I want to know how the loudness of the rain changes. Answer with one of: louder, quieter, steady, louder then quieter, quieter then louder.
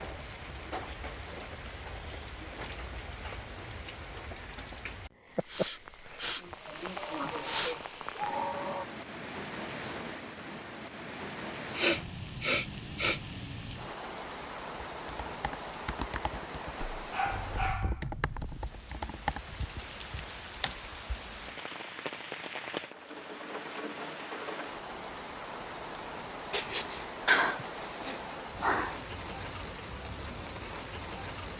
steady.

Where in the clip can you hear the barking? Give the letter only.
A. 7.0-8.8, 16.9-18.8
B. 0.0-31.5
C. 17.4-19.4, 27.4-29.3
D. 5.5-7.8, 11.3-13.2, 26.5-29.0
A.